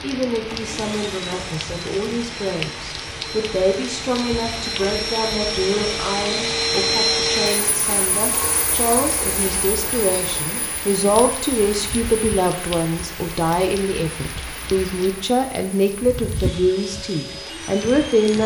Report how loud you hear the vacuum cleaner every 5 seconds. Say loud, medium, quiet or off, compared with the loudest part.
medium, loud, quiet, quiet.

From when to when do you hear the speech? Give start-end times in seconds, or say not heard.
0.0-18.4.